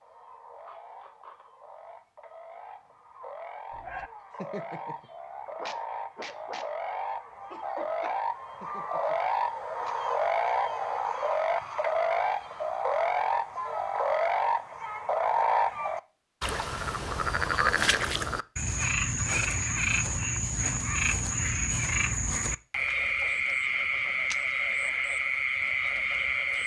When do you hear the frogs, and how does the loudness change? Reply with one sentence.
The frogs can be heard from 0.0 to 26.6 s, getting louder.